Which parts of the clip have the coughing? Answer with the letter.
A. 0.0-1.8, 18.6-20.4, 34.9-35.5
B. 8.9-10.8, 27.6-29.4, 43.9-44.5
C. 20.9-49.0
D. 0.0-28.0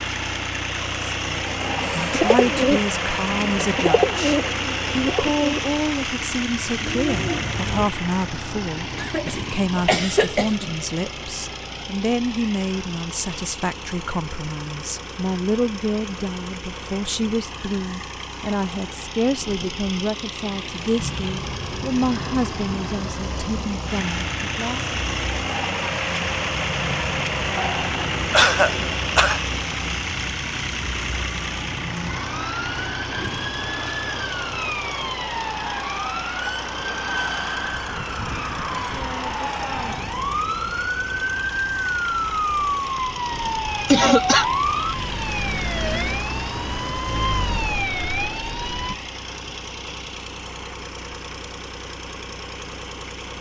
B.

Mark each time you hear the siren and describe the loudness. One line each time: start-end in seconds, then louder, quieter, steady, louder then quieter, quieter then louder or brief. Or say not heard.
20.9-49.0 louder.